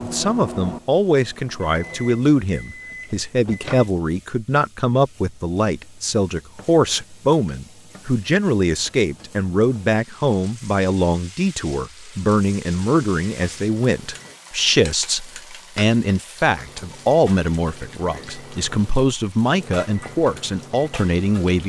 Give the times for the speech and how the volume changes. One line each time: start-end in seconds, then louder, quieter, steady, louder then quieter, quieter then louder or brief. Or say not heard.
0.0-21.6 steady.